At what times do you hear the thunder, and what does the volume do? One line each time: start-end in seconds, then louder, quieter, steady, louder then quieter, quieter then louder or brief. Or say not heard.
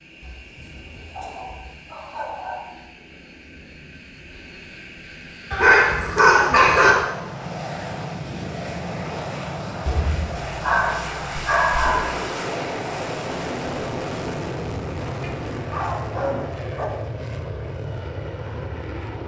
11.8-16.6 quieter.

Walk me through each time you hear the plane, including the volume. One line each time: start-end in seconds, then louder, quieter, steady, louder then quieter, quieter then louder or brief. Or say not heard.
0.0-19.2 louder.